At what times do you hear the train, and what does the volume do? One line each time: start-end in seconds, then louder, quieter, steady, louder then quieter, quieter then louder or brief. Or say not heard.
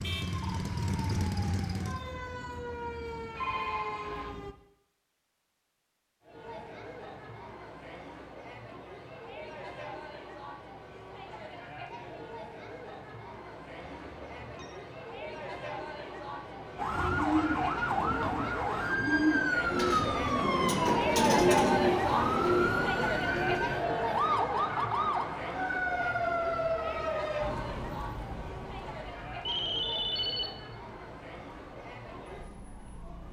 not heard.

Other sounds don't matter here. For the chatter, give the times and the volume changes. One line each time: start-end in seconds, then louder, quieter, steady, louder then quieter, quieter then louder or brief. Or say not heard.
6.2-33.2 louder then quieter.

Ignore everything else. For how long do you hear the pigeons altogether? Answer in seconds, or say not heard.
7 s.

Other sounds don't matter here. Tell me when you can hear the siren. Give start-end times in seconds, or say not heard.
0.0-4.5, 16.8-33.2.